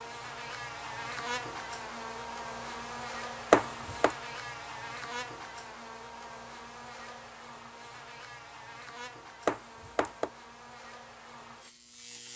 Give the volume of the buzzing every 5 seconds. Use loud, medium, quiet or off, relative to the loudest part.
loud, medium, medium.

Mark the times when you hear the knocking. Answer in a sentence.
The knocking can be heard from 3.5 to 4.2 s and from 9.4 to 10.3 s.